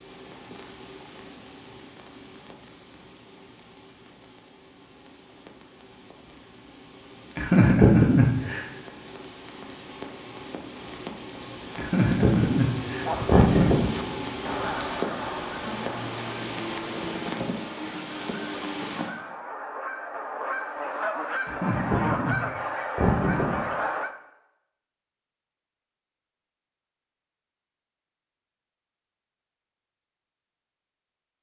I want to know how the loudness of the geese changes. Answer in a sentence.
The volume of the geese goes down, then up.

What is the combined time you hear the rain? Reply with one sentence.
The rain can be heard for 19 seconds in total.